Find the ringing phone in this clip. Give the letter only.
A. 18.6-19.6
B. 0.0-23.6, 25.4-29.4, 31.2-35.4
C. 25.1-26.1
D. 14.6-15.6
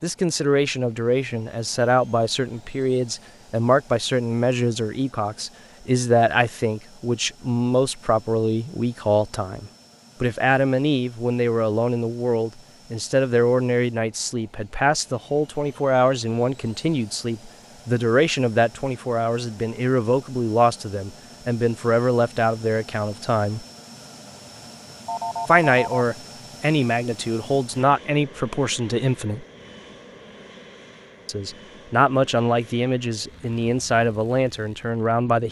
C.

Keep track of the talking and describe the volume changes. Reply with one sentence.
The volume of the talking stays about the same.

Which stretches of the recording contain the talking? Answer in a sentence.
The talking can be heard from 0.0 to 23.6 s, from 25.4 to 29.4 s and from 31.2 to 35.4 s.